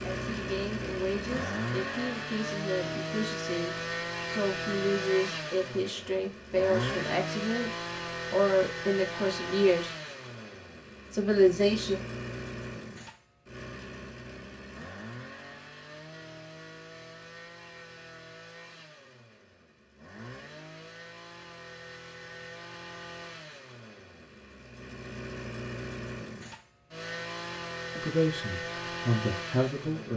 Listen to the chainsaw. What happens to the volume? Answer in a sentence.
The volume of the chainsaw goes down, then up.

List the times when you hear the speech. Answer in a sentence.
You can hear the speech from 0.0 to 7.7 s, from 8.3 to 9.9 s, from 11.1 to 11.9 s and from 27.9 to 30.1 s.